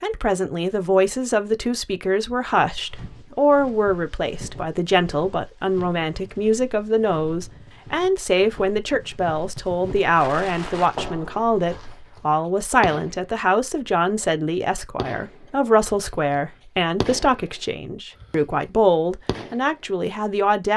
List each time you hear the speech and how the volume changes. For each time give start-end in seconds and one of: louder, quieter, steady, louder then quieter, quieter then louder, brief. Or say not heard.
0.0-20.7 steady.